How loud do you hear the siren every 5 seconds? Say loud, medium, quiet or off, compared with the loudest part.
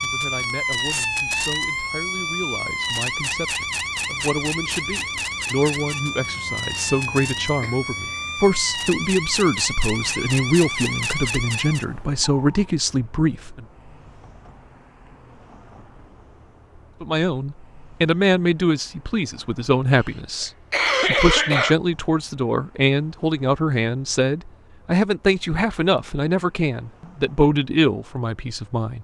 loud, loud, loud, off, off, off.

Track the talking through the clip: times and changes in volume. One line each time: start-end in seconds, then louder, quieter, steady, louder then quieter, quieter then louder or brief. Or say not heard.
0.0-13.7 louder
17.0-28.9 steady.